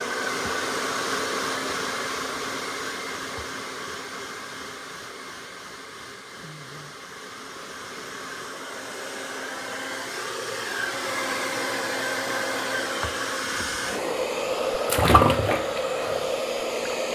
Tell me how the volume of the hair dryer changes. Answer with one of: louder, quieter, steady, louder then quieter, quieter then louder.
quieter then louder.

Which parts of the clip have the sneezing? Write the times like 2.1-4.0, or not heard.
6.3-7.0.